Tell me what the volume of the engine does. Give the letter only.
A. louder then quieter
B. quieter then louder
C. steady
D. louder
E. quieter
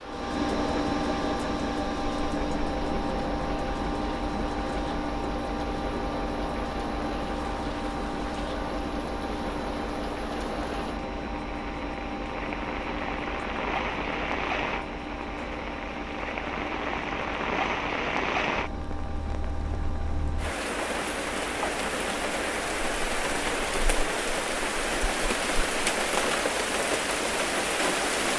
E.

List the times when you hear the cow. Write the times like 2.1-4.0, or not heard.
not heard.